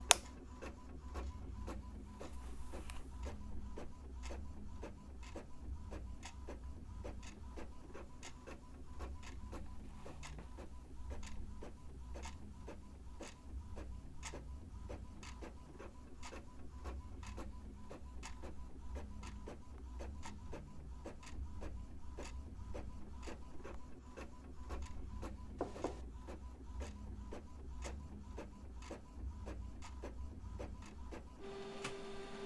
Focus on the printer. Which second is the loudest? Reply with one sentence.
The volume of the printer peaks at 32 seconds.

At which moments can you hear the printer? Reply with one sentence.
The printer can be heard from 0.0 to 32.4 s.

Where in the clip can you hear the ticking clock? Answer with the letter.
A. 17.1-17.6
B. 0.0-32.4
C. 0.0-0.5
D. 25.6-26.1
B.